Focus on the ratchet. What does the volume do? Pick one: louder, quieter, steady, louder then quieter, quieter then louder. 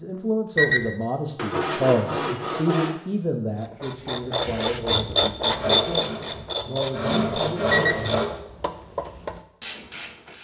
quieter.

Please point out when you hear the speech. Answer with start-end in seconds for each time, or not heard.
0.0-8.1.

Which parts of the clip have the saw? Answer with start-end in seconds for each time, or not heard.
1.4-3.0, 5.5-8.4.